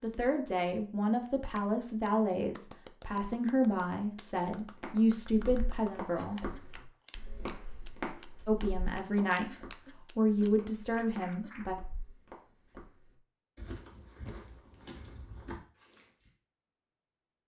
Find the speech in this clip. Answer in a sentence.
You can hear the speech from 0.0 to 6.4 s and from 8.4 to 11.8 s.